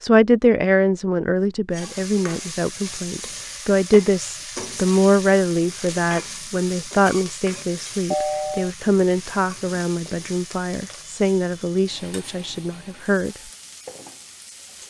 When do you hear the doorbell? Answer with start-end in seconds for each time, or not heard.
8.1-8.7.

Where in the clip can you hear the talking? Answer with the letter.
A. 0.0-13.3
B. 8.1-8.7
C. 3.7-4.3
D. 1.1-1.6
A.